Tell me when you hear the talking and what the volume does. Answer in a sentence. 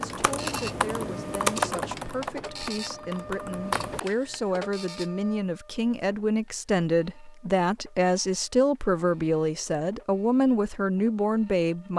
You can hear the talking from 0.0 to 11.9 s, getting louder.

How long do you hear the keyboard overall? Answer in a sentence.
You can hear the keyboard for 4 seconds altogether.